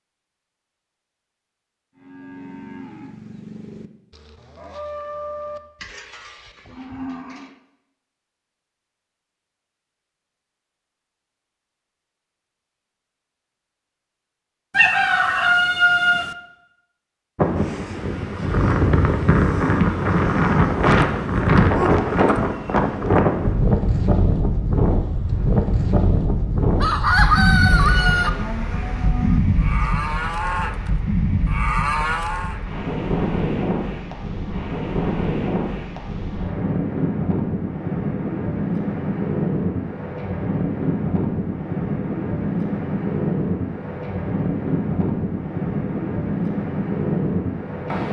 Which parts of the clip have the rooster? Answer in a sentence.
You can hear the rooster from 14.8 to 16.4 s and from 26.8 to 28.3 s.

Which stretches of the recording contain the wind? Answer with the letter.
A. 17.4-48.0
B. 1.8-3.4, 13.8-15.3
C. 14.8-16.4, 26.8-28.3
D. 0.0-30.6
A.